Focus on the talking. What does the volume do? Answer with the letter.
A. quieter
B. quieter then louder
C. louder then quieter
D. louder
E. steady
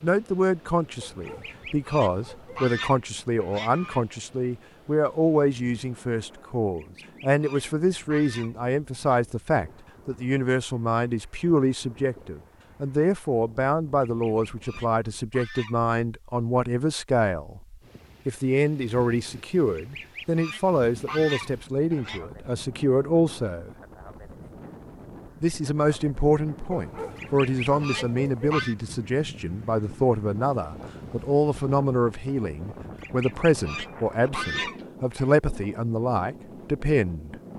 E.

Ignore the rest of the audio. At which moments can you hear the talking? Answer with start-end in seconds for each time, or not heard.
0.0-17.6, 18.2-23.7, 25.4-37.4.